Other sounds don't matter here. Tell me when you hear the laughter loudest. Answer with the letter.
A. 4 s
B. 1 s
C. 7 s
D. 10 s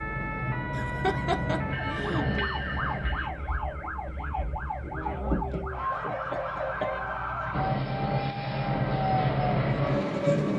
B.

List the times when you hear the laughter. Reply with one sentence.
You can hear the laughter from 0.7 to 2.2 s and from 5.9 to 6.9 s.